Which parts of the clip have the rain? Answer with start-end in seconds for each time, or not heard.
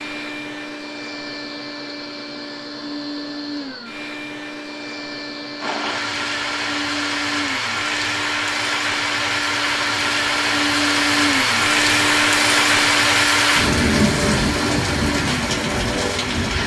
5.5-16.6.